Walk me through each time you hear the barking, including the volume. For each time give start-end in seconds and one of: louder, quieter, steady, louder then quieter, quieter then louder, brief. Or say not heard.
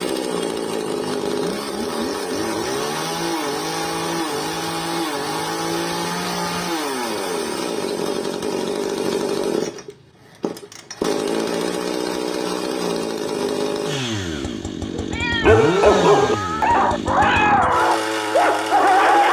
14.9-19.2 steady.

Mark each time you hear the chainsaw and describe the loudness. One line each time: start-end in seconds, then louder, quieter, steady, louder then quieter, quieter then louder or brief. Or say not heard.
0.0-19.2 steady.